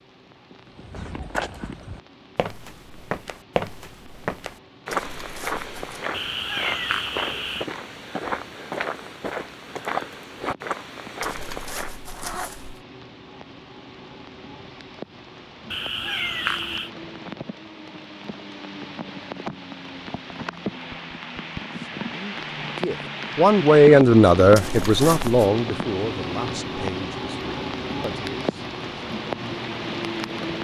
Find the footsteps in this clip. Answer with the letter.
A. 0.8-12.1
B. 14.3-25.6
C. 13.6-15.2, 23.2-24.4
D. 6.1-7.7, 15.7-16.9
A.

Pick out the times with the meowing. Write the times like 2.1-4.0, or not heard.
6.1-7.7, 15.7-16.9.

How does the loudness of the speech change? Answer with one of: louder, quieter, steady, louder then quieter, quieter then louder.
louder then quieter.